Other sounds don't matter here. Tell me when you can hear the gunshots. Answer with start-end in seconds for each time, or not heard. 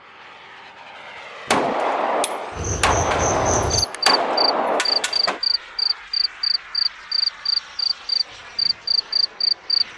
1.4-5.4.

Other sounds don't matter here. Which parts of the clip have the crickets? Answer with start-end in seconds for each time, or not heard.
2.5-9.8.